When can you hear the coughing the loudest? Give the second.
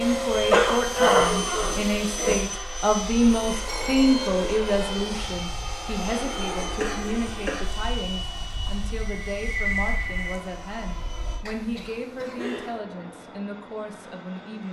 1 s.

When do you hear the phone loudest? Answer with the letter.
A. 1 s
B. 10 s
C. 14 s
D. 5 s
B.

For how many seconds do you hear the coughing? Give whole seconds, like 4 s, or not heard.
4 s.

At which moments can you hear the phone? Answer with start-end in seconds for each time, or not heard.
3.6-4.3, 8.7-10.4.